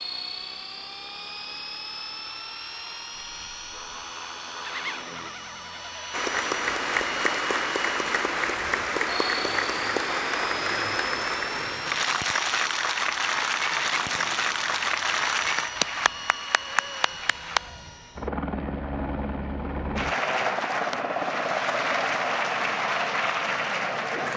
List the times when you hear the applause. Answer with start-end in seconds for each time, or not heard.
6.1-17.7, 19.9-24.3.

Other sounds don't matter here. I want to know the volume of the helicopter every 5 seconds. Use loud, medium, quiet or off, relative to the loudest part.
medium, medium, medium, medium, loud.